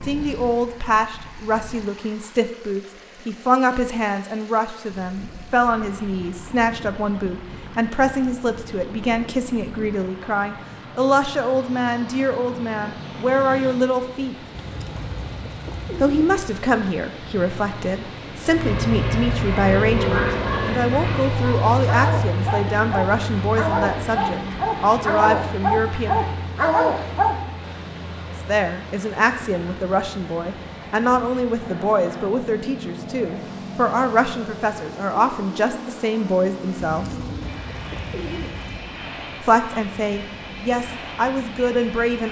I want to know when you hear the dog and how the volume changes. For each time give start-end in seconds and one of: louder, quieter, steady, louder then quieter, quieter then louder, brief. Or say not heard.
20.0-27.4 louder.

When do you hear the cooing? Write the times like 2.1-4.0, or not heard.
14.6-16.4, 36.9-38.8.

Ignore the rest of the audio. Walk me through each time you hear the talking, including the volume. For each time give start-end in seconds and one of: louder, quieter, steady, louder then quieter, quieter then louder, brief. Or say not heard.
0.1-14.3 steady
16.0-26.2 steady
28.3-37.2 steady
39.4-42.2 brief.